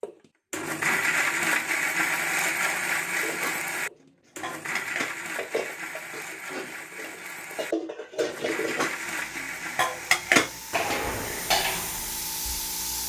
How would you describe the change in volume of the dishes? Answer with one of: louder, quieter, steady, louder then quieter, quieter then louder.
louder.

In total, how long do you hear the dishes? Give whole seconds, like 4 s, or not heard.
9 s.